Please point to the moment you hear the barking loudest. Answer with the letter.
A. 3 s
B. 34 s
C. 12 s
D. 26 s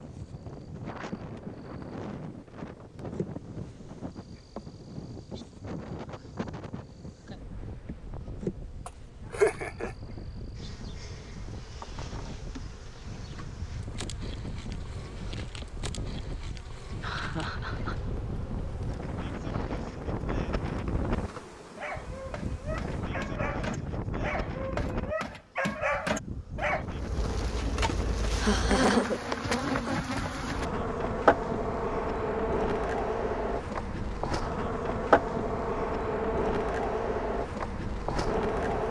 D.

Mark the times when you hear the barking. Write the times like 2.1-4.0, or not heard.
21.8-26.9.